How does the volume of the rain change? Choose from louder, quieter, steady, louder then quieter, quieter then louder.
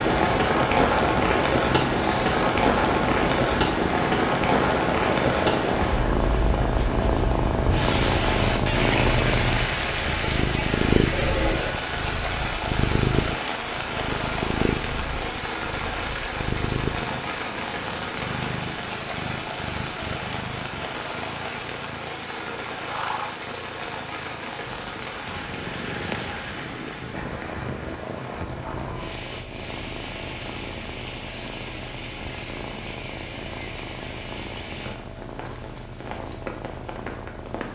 quieter.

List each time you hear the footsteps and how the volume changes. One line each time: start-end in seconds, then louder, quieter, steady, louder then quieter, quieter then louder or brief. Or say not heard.
not heard.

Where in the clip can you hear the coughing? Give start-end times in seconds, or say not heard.
not heard.